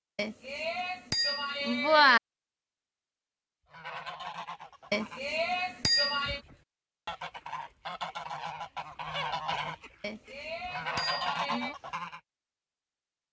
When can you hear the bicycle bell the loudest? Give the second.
2 s.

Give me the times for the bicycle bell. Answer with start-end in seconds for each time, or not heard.
0.1-2.2, 4.9-6.4, 10.0-11.8.